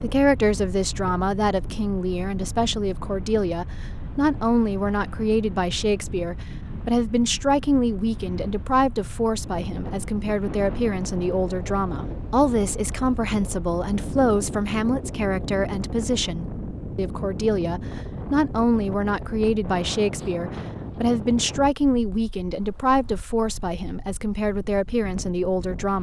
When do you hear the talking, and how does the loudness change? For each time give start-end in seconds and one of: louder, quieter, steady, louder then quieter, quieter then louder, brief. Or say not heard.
0.0-25.9 steady.